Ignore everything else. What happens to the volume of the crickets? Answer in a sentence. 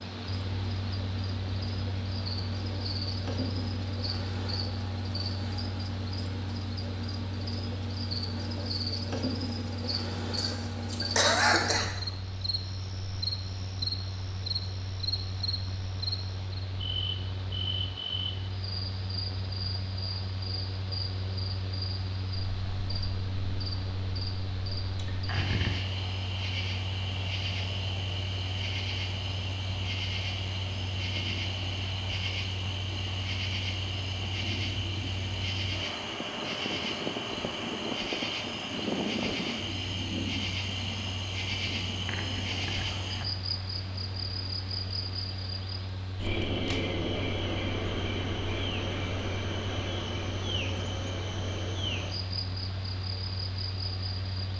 The loudness of the crickets stays about the same.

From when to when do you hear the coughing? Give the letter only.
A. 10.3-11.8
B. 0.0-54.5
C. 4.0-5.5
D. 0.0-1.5
A.